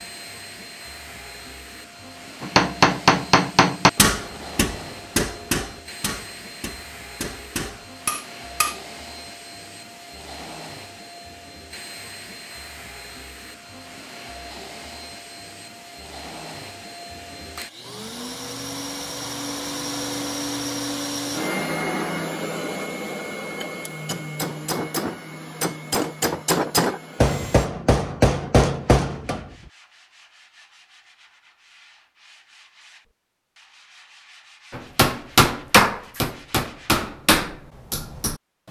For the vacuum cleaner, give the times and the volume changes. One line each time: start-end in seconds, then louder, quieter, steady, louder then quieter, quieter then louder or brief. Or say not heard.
0.0-27.7 louder.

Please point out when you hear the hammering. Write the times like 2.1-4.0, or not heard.
2.4-8.8, 23.6-29.4, 34.7-38.6.